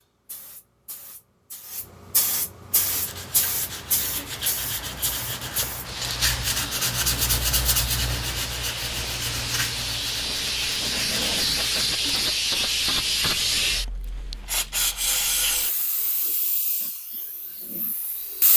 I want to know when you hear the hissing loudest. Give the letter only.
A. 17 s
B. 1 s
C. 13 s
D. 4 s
C.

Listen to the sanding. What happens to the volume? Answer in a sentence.
The loudness of the sanding goes up, then down.